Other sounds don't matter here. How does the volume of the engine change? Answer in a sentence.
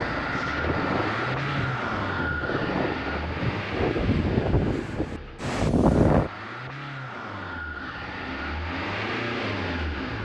The loudness of the engine goes down, then up.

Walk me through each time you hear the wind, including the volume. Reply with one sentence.
The wind can be heard from 0.0 to 6.3 s, getting louder.